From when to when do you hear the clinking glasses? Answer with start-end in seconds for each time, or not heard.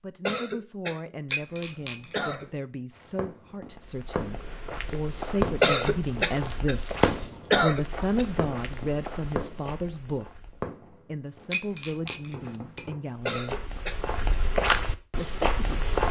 1.3-2.4, 11.5-12.9.